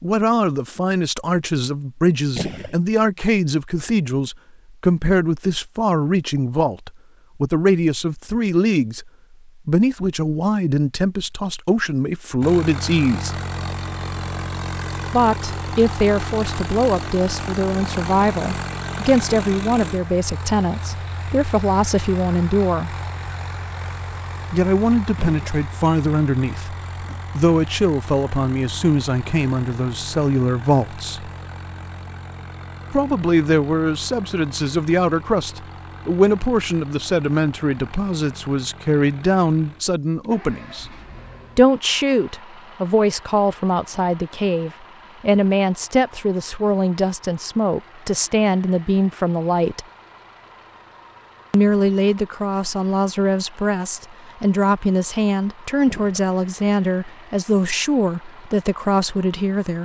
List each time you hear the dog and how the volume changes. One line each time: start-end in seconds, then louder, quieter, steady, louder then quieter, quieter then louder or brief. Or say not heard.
not heard.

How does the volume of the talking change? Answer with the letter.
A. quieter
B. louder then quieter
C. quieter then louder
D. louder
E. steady
E.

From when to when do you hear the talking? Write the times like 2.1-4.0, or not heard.
0.0-13.3, 15.1-22.9, 24.5-31.3, 32.9-40.9, 41.5-49.9, 51.5-59.8.